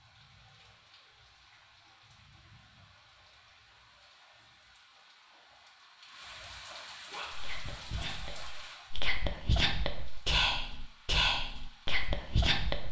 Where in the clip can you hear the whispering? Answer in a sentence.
You can hear the whispering from 7.1 to 12.8 s.